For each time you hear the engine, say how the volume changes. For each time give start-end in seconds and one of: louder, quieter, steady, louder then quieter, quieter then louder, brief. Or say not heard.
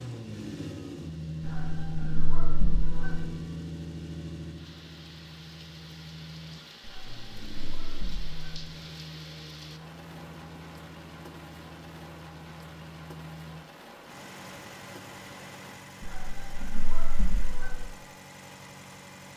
0.0-19.3 quieter.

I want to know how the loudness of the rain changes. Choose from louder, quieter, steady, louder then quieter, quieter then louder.
louder.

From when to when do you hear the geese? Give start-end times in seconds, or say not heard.
1.4-3.2, 6.8-8.7, 16.0-17.8.